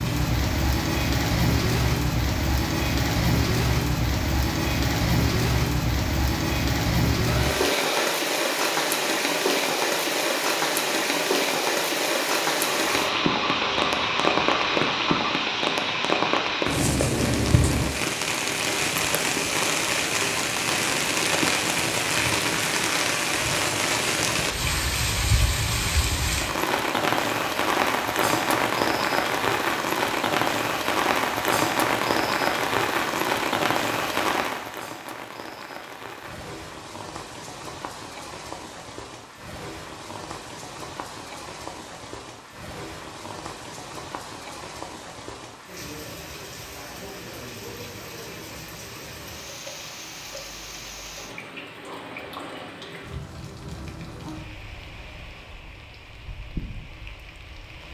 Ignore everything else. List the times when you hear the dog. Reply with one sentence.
The dog can be heard from 12.7 to 15.4 s.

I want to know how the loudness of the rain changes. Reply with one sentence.
The loudness of the rain goes down.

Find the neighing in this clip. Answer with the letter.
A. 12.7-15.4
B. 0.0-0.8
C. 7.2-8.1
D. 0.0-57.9
C.